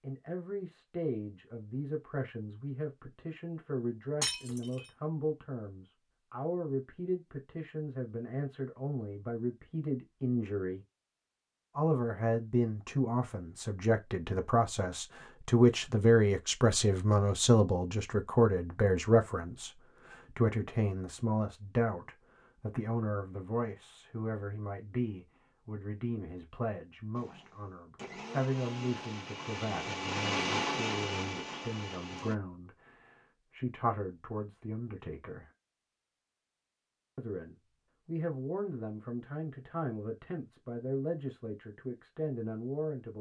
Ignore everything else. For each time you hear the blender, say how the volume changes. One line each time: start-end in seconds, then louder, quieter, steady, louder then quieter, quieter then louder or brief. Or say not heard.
27.1-32.4 louder then quieter.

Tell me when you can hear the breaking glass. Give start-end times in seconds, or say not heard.
4.2-4.9.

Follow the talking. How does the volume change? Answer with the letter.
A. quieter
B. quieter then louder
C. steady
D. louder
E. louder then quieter
E.